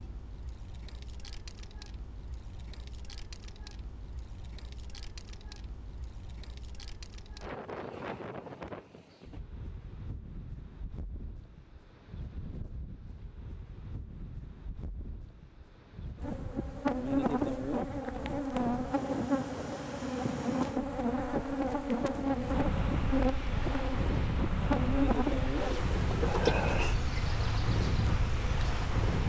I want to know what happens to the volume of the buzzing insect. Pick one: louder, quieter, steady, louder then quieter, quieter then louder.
steady.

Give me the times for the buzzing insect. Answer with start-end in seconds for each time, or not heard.
16.2-29.2.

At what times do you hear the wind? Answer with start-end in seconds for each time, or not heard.
0.0-29.2.